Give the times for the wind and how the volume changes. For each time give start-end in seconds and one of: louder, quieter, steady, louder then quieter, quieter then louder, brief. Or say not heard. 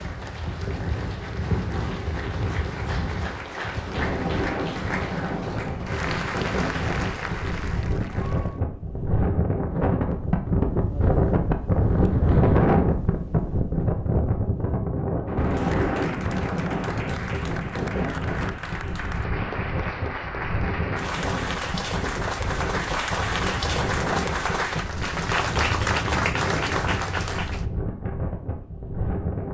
0.0-29.4 louder then quieter.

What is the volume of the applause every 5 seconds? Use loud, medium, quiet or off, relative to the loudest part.
medium, medium, off, medium, loud, loud.